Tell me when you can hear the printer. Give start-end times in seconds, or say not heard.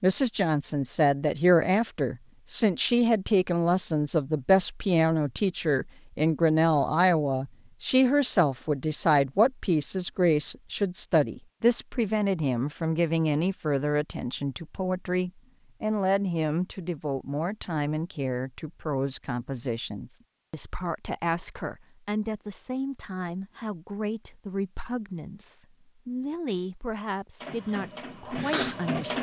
27.4-29.1.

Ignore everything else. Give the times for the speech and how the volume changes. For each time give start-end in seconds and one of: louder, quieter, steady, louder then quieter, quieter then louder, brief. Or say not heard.
0.0-29.1 quieter.